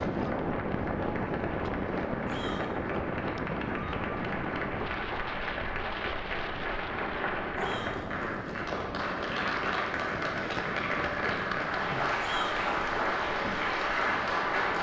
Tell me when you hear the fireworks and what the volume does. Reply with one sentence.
The fireworks can't be heard in this clip.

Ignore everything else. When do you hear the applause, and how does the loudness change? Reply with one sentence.
The applause can be heard from 0.0 to 14.7 s, getting louder.